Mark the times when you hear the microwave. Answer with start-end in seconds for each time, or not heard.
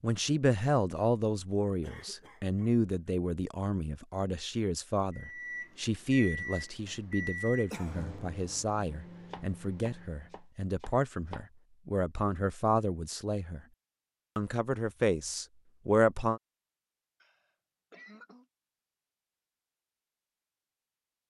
5.1-10.4.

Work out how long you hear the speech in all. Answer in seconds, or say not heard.
16 s.